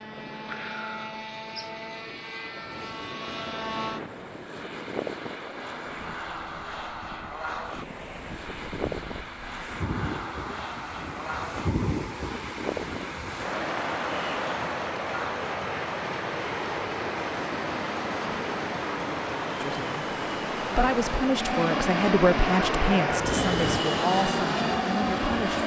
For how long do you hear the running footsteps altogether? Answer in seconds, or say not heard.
not heard.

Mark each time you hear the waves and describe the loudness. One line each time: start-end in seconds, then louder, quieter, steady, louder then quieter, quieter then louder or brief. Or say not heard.
0.0-25.6 louder.